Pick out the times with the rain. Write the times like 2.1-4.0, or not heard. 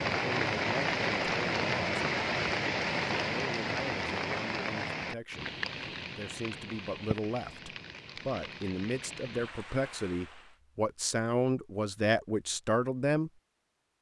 0.0-10.6.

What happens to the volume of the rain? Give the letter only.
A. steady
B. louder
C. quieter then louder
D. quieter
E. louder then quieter
D.